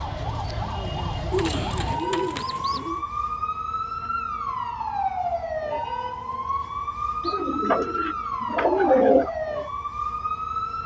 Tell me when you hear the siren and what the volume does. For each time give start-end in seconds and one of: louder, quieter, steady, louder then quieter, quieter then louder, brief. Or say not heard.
0.0-10.8 steady.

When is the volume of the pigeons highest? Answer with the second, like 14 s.
9 s.